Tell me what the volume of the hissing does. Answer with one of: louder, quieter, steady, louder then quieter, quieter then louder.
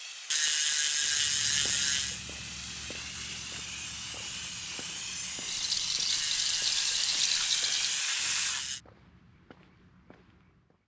louder.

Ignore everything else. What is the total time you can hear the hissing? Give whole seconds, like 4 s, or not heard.
9 s.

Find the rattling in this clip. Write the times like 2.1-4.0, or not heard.
5.5-8.0.